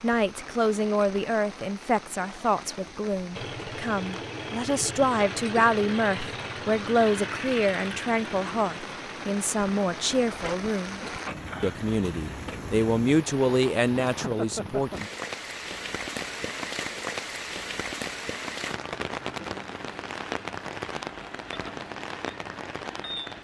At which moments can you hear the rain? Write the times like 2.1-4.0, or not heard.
0.0-23.3.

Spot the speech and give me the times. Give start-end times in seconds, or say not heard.
0.0-11.0, 11.6-15.1.